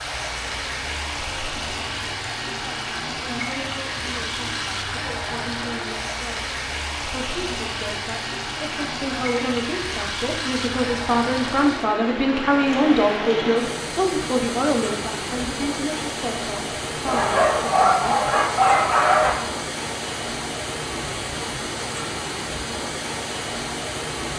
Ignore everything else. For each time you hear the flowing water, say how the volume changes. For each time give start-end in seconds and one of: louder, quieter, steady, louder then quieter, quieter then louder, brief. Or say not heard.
0.0-24.3 steady.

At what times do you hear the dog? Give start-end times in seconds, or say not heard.
17.1-19.4.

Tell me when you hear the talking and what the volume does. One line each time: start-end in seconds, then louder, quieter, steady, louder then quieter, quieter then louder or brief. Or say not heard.
2.6-18.3 louder then quieter.